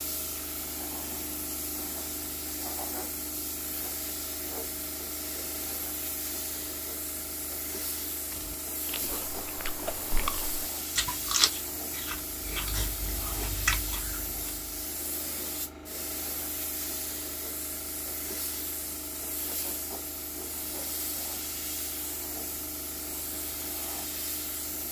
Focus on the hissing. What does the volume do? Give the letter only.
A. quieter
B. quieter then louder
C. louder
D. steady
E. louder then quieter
D.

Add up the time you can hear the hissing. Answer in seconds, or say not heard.
25 s.